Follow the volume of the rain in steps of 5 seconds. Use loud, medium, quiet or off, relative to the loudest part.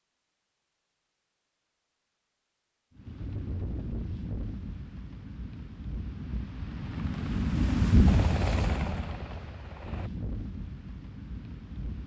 medium, loud, medium.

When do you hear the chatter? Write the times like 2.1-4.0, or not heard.
not heard.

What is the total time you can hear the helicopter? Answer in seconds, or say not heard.
2 s.